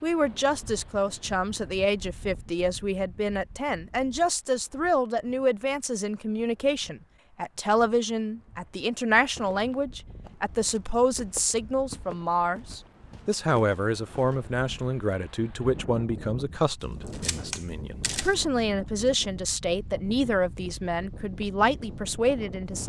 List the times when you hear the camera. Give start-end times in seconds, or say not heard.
16.8-18.4.